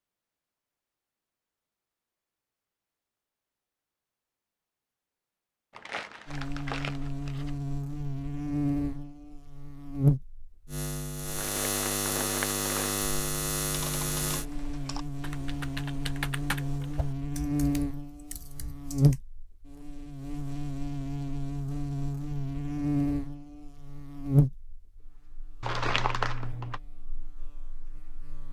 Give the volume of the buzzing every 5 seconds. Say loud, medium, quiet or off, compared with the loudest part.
off, loud, loud, loud, loud, quiet.